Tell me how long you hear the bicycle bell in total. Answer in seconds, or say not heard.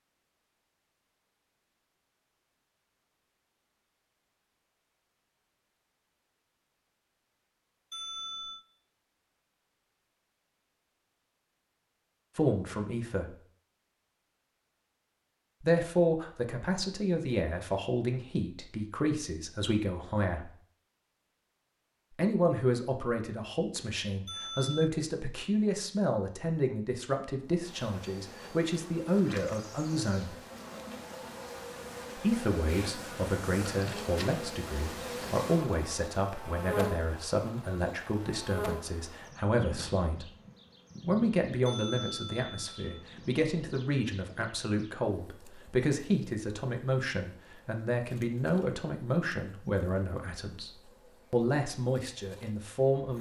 3 s.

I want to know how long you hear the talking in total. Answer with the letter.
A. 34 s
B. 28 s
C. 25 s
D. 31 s
A.